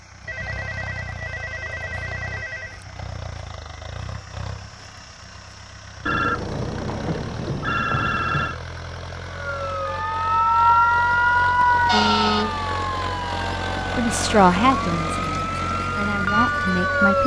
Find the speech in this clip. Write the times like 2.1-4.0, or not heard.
13.9-17.2.